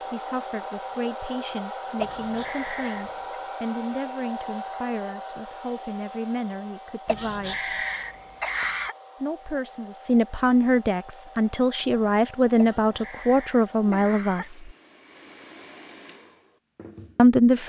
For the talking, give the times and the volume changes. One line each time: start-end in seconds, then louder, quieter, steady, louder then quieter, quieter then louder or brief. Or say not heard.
0.1-7.7 steady
9.2-14.7 steady
17.1-17.6 brief.